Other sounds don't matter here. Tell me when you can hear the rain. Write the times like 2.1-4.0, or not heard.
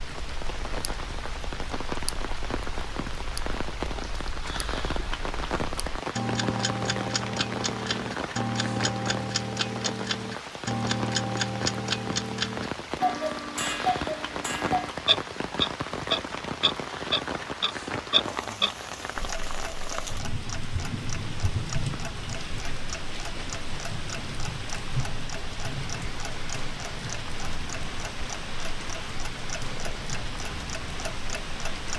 0.0-31.9.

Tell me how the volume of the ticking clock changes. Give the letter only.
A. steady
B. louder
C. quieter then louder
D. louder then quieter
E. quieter
D.